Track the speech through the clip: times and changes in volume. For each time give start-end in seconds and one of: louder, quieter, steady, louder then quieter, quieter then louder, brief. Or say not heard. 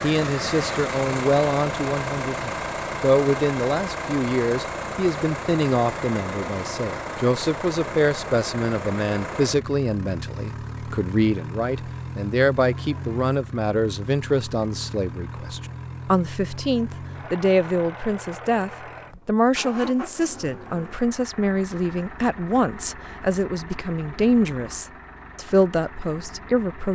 0.0-26.9 steady.